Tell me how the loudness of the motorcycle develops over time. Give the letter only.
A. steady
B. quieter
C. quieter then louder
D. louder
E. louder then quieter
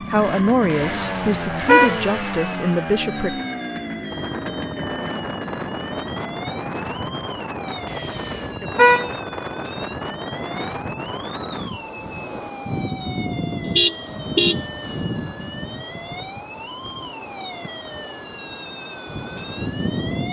B.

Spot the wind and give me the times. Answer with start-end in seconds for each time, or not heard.
4.1-20.2.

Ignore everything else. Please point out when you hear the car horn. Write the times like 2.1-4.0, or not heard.
0.9-2.0, 7.9-9.1, 13.8-14.6.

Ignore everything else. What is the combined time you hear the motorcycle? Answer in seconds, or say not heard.
7 s.